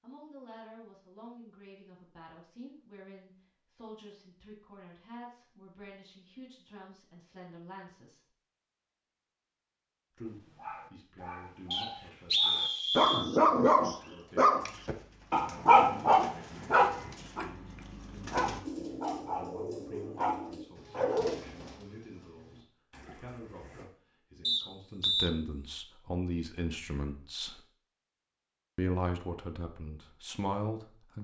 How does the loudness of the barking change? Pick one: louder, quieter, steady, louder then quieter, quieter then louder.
louder then quieter.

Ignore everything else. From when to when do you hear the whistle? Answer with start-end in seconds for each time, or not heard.
11.7-13.2, 24.4-25.3.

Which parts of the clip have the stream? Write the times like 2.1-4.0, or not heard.
not heard.